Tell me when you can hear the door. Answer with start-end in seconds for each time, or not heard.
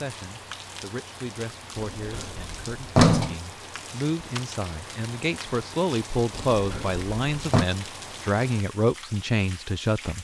1.8-3.4, 6.3-7.7.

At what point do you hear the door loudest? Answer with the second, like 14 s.
3 s.